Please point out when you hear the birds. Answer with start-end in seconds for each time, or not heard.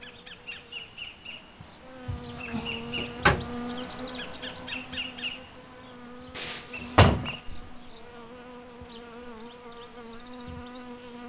not heard.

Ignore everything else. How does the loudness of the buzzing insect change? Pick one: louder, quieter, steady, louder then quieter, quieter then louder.
louder then quieter.